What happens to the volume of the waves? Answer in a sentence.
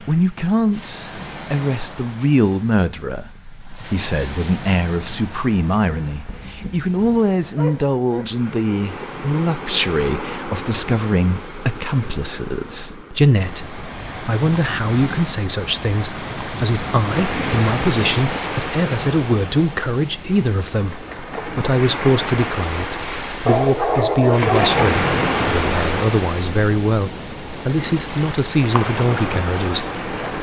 The volume of the waves goes up.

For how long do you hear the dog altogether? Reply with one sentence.
The dog can be heard for 4 seconds in total.